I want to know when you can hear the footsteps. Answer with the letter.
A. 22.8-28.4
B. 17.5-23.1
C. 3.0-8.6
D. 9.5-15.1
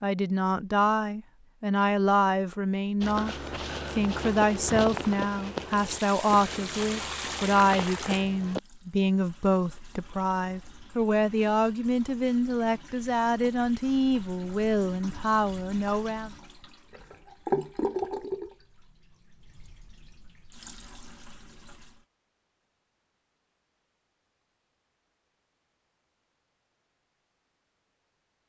C.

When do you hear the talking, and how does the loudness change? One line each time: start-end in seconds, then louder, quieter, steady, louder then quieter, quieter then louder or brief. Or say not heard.
0.0-16.4 steady.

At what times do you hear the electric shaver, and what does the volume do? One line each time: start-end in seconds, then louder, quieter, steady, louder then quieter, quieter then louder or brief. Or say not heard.
not heard.